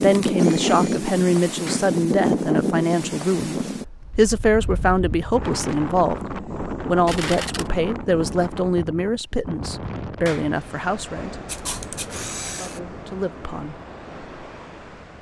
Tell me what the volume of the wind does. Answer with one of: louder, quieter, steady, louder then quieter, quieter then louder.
quieter.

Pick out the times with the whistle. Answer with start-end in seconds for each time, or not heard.
not heard.